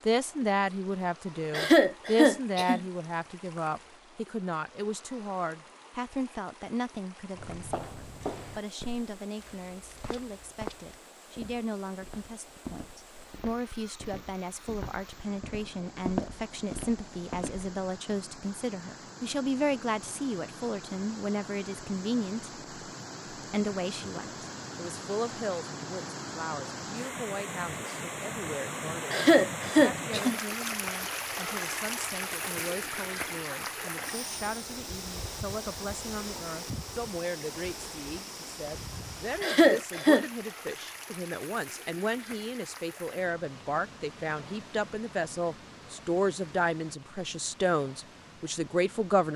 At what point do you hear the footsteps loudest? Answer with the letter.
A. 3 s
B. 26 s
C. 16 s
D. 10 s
C.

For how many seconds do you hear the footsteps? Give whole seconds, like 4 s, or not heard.
10 s.